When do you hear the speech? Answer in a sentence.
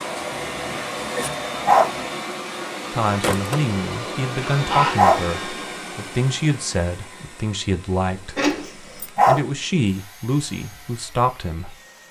The speech can be heard from 2.9 to 11.8 s.